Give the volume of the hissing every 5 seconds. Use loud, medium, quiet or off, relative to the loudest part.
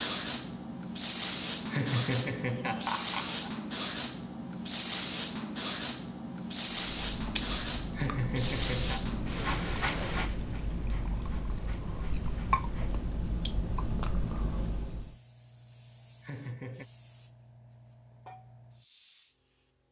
loud, loud, medium, quiet.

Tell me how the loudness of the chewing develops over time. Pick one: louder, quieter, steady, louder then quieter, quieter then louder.
louder.